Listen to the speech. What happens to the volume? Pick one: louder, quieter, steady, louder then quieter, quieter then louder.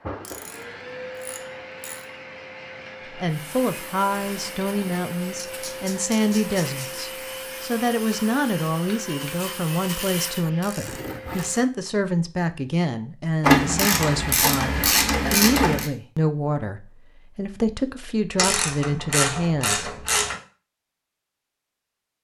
steady.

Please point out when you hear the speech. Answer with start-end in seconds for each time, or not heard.
3.1-19.9.